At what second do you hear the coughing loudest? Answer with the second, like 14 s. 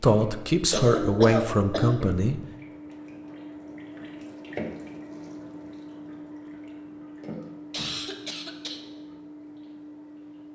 1 s.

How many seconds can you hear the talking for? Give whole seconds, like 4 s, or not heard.
2 s.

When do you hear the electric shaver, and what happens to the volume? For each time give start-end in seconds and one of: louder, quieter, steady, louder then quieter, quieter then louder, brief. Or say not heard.
not heard.